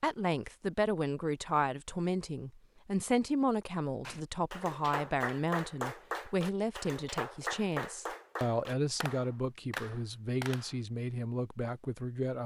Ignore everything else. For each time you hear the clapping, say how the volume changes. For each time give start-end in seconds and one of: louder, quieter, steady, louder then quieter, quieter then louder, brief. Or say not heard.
4.0-10.8 steady.